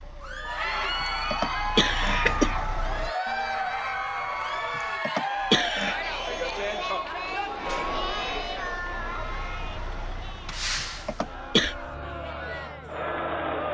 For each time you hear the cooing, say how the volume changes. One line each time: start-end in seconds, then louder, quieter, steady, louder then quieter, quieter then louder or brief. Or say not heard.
not heard.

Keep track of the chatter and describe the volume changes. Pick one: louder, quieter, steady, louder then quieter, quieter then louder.
quieter.